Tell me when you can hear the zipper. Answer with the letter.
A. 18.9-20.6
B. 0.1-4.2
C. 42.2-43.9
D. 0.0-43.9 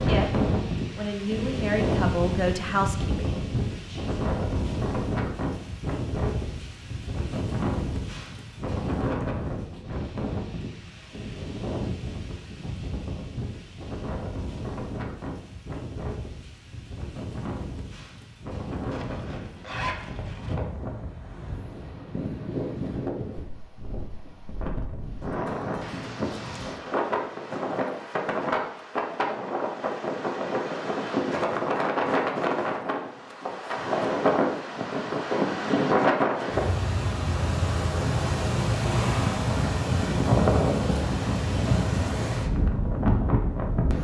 A.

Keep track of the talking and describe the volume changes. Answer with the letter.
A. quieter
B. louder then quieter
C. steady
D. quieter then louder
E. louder
B.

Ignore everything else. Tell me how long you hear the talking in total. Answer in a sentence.
The talking can be heard for 4 seconds in total.